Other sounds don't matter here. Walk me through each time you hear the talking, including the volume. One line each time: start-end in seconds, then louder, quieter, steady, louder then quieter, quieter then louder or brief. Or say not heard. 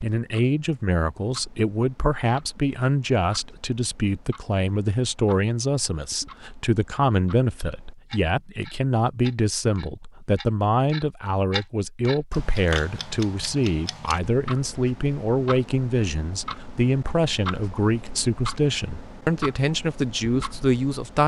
0.0-21.2 steady.